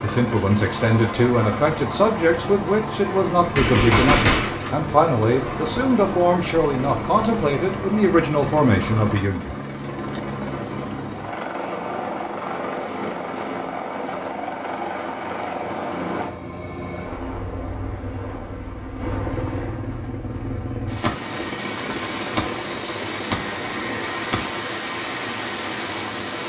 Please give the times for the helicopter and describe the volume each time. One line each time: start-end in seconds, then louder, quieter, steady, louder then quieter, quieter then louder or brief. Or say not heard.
0.0-26.4 steady.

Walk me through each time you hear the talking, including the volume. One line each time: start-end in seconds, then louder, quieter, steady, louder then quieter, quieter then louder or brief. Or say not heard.
0.0-9.6 steady.